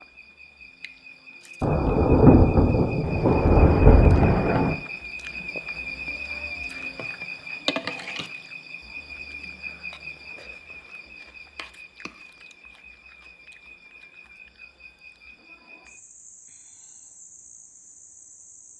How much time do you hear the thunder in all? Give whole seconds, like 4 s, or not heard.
3 s.